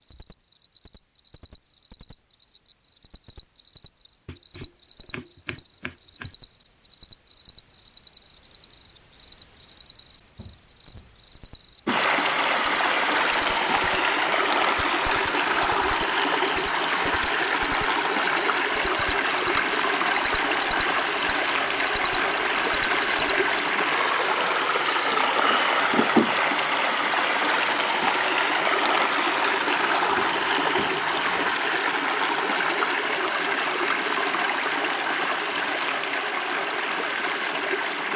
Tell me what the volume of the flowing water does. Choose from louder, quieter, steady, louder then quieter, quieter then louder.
steady.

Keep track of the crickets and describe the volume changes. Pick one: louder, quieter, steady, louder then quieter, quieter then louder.
louder.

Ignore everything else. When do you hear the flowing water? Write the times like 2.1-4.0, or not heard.
11.8-38.1.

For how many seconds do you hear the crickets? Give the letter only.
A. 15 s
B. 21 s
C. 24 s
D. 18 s
C.